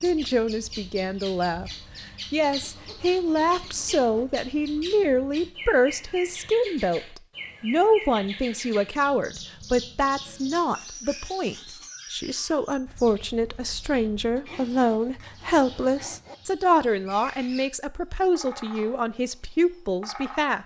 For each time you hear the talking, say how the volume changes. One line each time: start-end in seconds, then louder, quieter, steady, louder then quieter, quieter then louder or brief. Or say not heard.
0.0-20.6 steady.